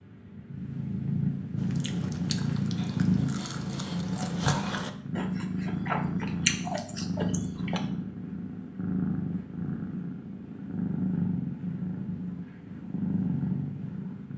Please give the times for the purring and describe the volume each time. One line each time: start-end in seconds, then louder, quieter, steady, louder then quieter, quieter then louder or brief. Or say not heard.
0.0-14.3 steady.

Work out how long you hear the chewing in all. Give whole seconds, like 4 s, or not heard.
6 s.